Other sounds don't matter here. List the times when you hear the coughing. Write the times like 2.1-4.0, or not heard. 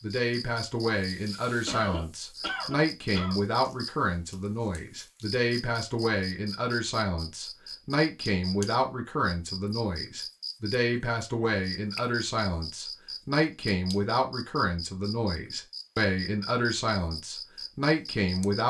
1.6-3.4.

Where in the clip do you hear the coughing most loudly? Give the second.
2 s.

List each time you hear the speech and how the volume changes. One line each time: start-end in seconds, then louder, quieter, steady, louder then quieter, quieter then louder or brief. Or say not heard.
0.0-18.6 steady.